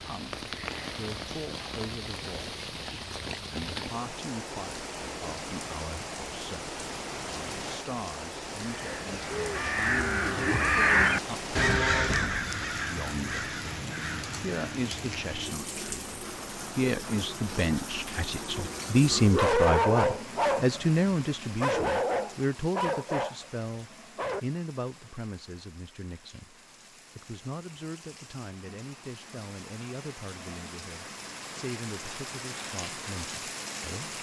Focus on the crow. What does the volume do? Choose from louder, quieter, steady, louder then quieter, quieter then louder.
louder then quieter.